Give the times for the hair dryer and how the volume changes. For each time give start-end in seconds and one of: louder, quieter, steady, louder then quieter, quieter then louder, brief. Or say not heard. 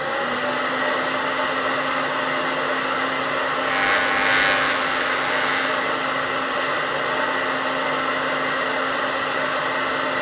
0.0-10.1 steady.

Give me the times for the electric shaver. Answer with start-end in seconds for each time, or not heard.
3.6-5.8.